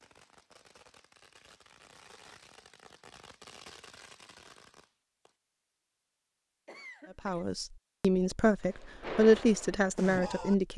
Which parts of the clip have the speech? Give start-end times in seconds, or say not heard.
7.2-10.7.